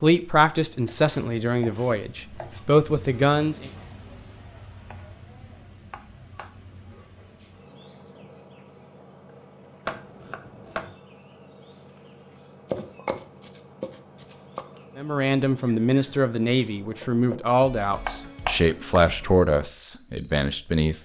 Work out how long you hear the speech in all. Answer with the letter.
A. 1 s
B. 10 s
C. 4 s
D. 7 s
B.